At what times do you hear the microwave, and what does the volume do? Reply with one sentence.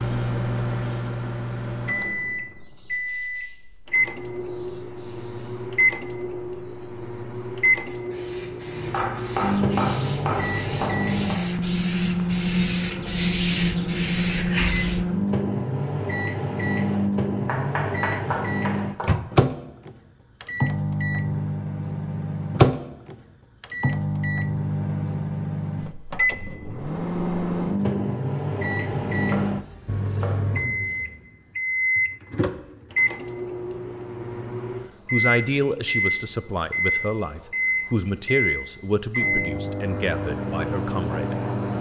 You can hear the microwave from 0.0 to 41.7 s, at a steady volume.